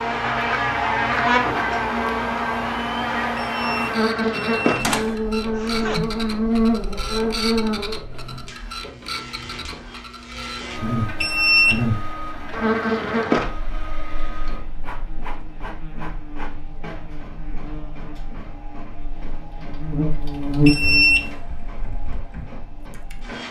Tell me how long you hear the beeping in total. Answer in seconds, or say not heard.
3 s.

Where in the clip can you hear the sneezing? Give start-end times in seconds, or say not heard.
5.5-6.1.